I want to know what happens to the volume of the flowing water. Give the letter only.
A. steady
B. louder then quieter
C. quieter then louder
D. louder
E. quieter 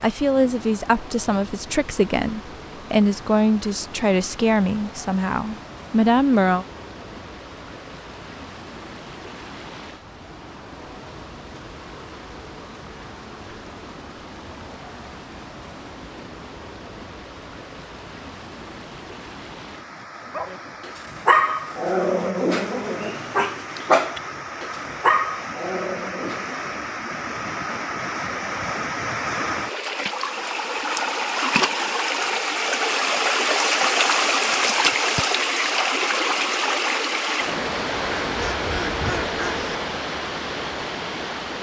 D.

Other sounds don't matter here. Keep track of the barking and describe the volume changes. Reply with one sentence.
The loudness of the barking goes down.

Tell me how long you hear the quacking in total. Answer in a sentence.
You can hear the quacking for 2 seconds altogether.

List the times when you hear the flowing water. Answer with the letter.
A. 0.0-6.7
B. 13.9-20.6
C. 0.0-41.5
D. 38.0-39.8
C.